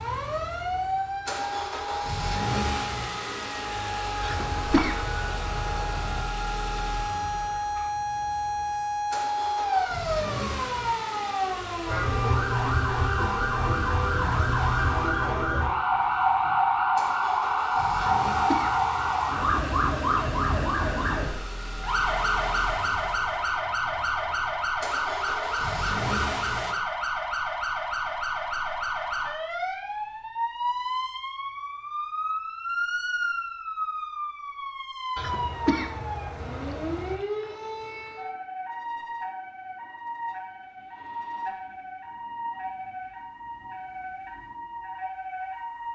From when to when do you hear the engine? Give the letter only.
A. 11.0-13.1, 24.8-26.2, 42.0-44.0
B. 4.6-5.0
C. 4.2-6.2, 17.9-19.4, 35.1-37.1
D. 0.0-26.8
D.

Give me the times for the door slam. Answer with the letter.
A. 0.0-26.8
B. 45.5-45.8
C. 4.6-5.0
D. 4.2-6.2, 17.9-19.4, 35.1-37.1
C.